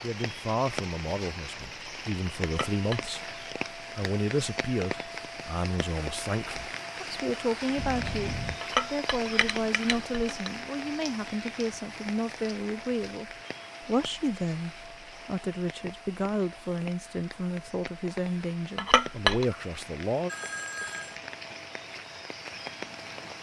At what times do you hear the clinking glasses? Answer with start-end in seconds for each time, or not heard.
2.4-3.1, 8.6-10.5, 18.8-19.4.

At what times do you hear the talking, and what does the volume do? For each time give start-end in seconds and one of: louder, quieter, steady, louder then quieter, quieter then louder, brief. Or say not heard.
0.0-20.3 steady.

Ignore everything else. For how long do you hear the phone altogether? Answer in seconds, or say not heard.
2 s.